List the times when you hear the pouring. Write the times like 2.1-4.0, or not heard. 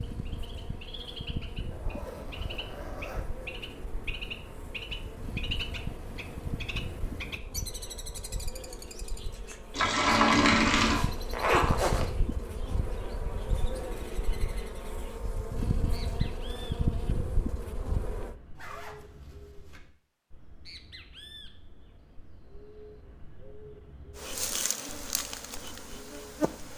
9.7-11.0.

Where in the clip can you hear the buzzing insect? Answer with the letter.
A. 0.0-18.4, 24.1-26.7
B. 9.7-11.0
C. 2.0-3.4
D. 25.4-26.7
A.